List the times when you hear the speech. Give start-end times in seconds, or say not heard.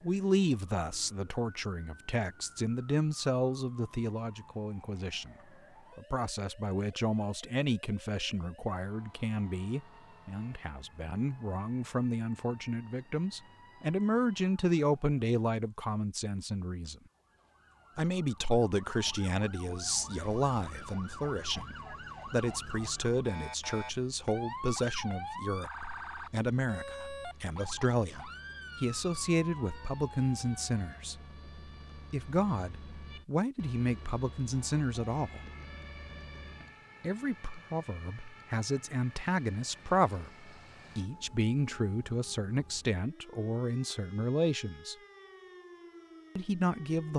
0.0-5.3, 6.0-17.0, 17.9-31.1, 31.9-35.4, 37.0-45.0, 46.4-47.1.